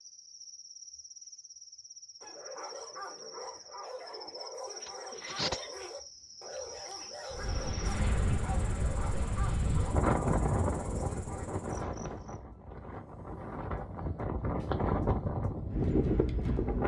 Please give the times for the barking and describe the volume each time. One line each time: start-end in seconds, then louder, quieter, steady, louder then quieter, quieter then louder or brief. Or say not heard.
2.2-11.5 steady.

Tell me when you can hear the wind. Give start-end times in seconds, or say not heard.
7.3-16.8.